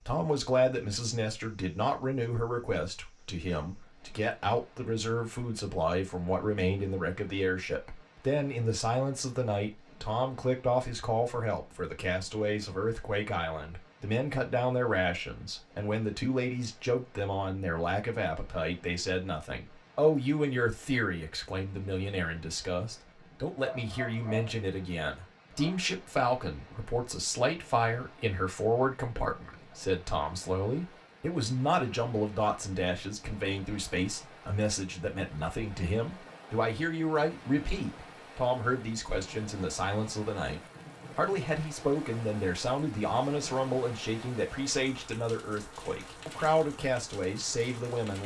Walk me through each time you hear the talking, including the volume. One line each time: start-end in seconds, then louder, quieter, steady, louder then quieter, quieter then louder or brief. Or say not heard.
0.0-48.2 steady.